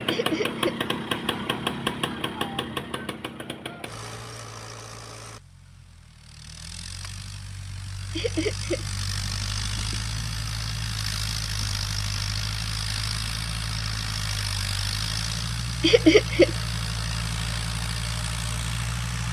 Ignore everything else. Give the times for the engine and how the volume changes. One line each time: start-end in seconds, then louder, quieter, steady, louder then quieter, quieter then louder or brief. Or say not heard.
0.0-19.2 quieter then louder.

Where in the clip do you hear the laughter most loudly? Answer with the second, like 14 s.
16 s.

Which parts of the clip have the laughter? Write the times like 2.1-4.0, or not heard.
0.1-0.8, 8.1-8.8, 15.8-16.5.